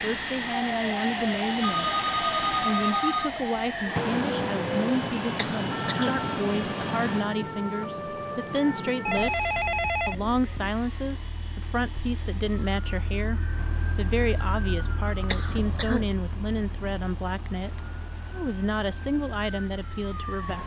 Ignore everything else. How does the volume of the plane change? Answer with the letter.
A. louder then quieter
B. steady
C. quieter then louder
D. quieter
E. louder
D.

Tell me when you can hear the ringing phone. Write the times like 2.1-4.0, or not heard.
1.6-3.3, 9.1-10.7, 15.4-16.1.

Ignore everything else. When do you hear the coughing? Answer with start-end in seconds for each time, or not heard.
5.3-6.2, 15.3-16.1.